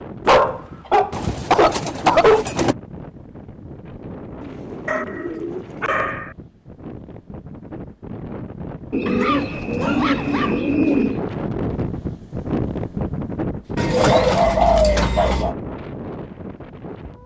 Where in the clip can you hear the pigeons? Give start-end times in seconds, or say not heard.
1.1-2.8, 4.4-6.0, 8.9-11.2, 13.8-15.6.